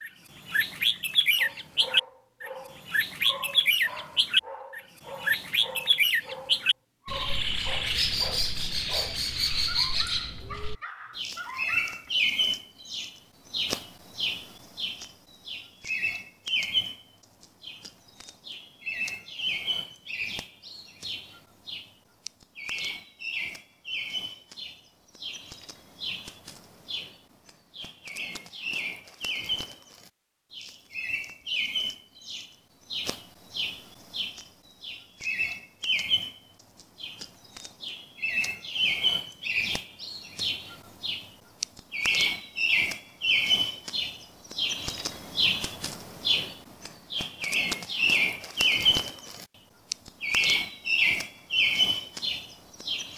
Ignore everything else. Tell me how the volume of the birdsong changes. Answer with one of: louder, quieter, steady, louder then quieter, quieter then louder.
quieter then louder.